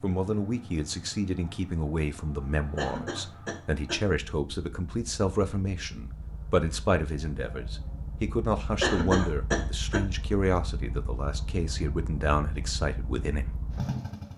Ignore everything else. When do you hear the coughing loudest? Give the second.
9 s.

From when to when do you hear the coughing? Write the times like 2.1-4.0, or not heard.
2.8-4.0, 8.8-10.1.